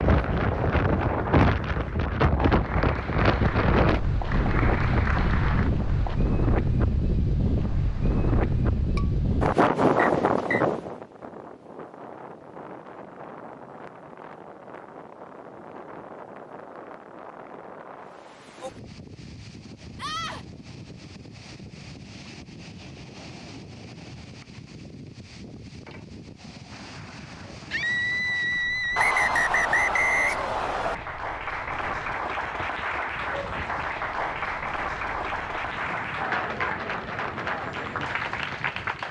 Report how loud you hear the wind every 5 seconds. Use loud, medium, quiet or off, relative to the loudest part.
loud, loud, medium, quiet, quiet, quiet, quiet, quiet.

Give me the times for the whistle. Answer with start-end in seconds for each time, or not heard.
9.9-10.7, 28.9-30.9.